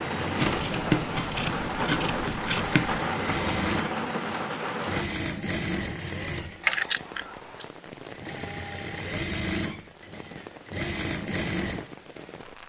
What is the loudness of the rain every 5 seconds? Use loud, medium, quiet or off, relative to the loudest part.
loud, quiet, quiet.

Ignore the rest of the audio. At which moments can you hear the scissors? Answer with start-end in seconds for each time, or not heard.
0.3-3.0, 6.6-7.7.